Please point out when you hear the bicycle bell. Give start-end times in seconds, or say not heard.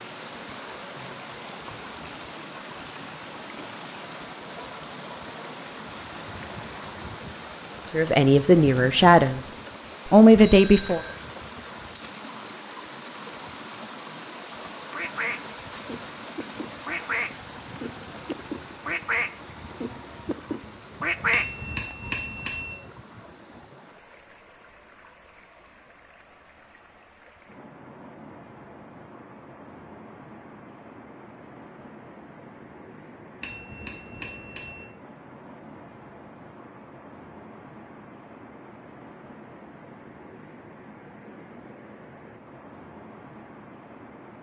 10.3-11.2, 21.3-22.8, 33.4-34.9.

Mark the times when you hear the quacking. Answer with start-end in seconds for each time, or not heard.
14.9-21.4.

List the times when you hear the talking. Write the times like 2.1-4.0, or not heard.
7.9-11.0.